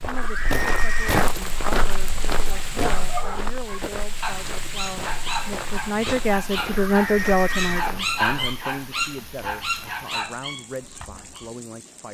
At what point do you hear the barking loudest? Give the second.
8 s.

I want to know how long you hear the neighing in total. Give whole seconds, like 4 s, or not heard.
2 s.